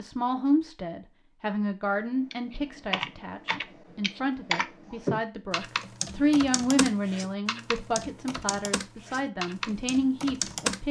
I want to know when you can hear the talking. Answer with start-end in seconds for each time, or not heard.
0.0-10.8.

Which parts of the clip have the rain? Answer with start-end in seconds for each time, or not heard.
not heard.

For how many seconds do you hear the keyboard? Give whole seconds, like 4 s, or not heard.
9 s.